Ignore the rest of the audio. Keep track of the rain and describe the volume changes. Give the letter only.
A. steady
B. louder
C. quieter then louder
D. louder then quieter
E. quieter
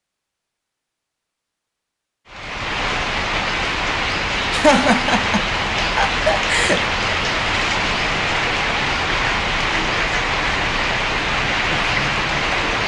A.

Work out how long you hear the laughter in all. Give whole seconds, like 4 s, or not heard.
2 s.